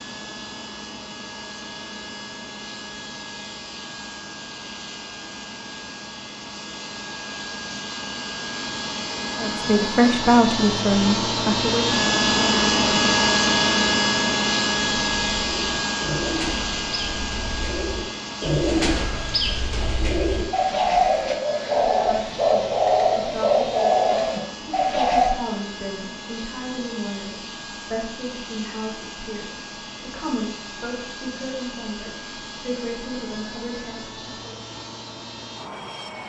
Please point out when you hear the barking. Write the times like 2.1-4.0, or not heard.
not heard.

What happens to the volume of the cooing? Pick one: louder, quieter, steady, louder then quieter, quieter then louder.
louder.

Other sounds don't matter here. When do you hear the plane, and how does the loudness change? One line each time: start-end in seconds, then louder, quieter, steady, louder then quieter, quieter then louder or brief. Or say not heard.
0.0-36.2 louder then quieter.